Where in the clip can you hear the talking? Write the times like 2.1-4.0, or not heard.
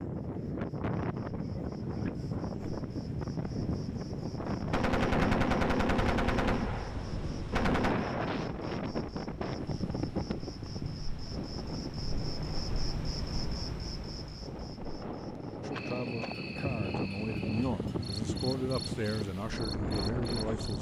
15.6-20.7.